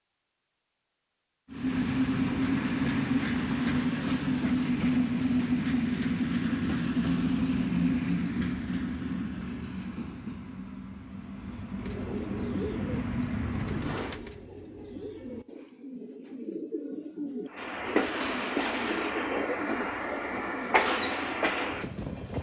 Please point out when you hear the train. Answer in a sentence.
You can hear the train from 1.5 to 14.2 s and from 17.4 to 22.3 s.